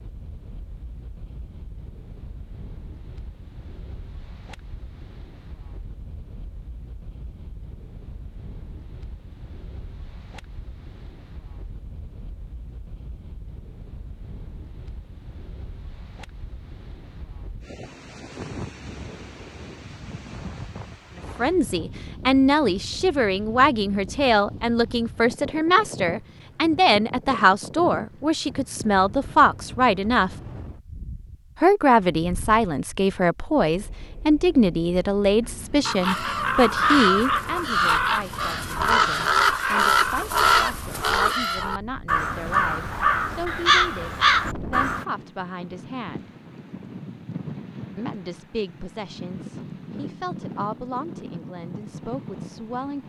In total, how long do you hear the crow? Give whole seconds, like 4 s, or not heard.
9 s.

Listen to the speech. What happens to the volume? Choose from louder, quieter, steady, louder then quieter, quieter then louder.
quieter.